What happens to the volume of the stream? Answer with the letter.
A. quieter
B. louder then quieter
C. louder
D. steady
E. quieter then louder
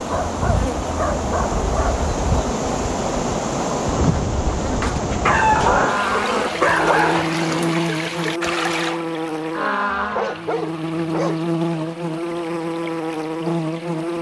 A.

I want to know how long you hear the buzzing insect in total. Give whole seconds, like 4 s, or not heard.
14 s.